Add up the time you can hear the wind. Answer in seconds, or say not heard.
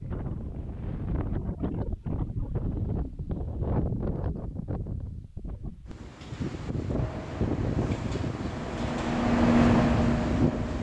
11 s.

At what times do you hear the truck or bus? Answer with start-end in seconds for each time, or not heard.
7.0-10.7.